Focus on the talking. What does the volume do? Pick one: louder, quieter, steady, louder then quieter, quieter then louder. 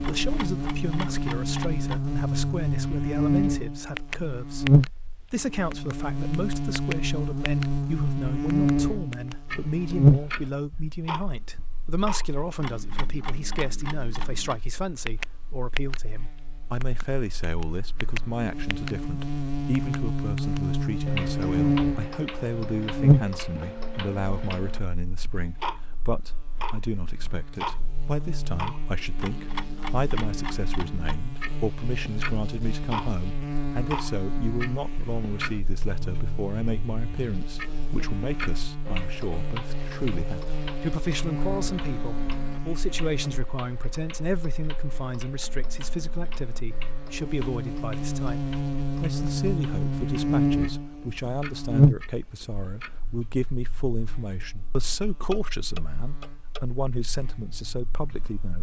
steady.